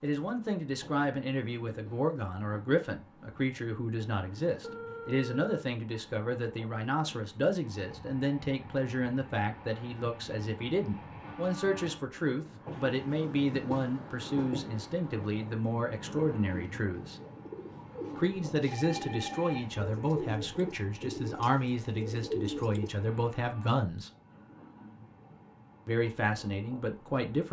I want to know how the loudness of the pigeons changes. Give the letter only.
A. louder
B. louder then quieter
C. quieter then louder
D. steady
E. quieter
A.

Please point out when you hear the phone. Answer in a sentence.
The phone can be heard from 4.6 to 5.6 s and from 18.6 to 19.6 s.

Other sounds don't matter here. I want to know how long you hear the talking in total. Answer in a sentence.
The talking can be heard for 25 seconds in total.